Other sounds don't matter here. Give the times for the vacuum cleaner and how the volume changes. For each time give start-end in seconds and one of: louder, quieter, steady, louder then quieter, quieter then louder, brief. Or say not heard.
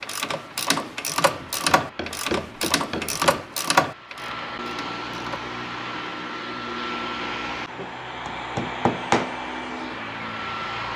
0.0-10.9 louder.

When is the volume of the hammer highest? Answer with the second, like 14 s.
9 s.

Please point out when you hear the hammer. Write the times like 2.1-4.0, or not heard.
1.4-3.4, 7.8-9.3.